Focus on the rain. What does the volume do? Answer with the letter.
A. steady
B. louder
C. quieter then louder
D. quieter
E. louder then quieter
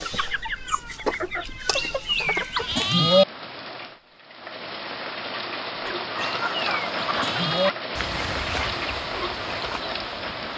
B.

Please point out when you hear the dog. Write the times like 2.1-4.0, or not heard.
not heard.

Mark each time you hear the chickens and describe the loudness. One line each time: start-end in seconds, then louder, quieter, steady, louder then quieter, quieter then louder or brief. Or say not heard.
0.0-3.0 brief
5.8-10.5 quieter.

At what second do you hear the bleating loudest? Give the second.
3 s.